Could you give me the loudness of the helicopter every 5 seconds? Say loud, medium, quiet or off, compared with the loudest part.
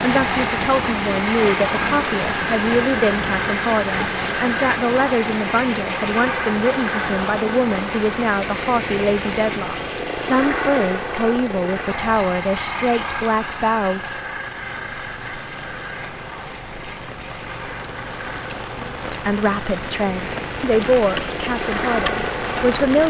loud, loud, loud, medium, loud.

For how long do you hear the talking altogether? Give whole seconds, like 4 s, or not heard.
18 s.